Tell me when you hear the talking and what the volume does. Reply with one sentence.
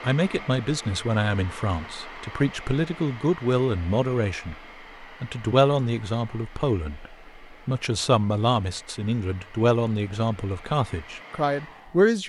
You can hear the talking from 0.0 to 12.2 s, at a steady volume.